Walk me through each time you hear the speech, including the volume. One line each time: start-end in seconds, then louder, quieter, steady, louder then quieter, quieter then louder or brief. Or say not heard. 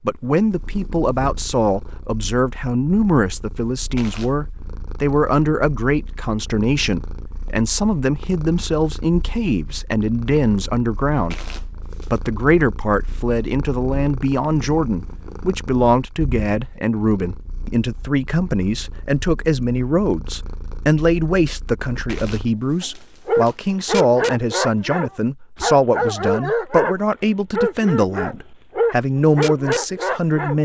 0.0-30.6 steady.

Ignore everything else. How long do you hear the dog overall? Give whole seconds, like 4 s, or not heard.
8 s.